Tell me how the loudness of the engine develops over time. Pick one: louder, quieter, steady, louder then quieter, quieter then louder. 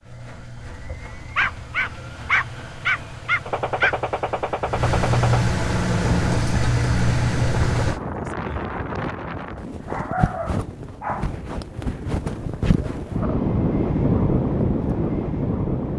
louder.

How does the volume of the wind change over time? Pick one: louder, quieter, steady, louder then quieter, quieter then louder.
louder.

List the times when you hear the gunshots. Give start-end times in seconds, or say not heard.
3.5-5.4.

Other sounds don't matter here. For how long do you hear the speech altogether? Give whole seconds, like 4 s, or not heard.
not heard.